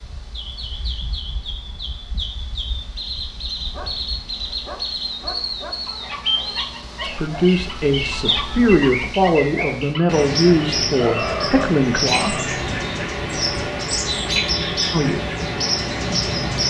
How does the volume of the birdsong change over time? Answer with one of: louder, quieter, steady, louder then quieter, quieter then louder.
louder.